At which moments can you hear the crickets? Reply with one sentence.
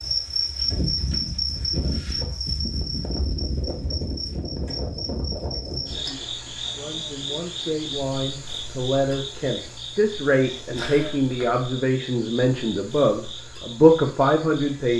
You can hear the crickets from 0.0 to 14.9 s.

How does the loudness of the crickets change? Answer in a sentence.
The volume of the crickets goes down.